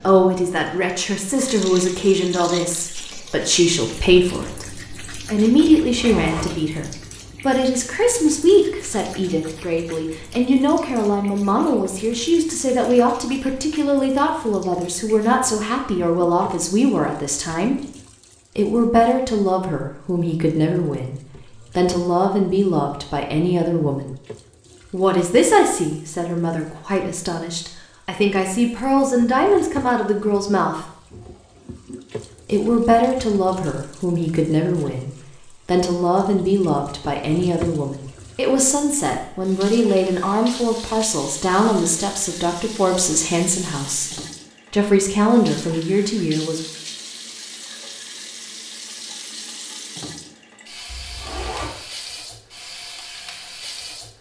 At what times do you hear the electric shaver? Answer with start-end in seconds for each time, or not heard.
not heard.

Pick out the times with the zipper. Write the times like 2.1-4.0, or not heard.
5.9-6.5, 50.9-51.8.